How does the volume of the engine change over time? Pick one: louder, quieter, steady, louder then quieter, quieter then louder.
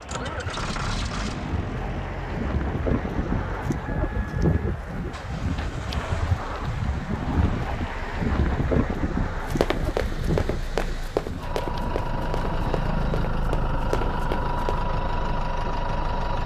quieter then louder.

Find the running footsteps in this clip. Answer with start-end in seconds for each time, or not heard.
9.4-14.8.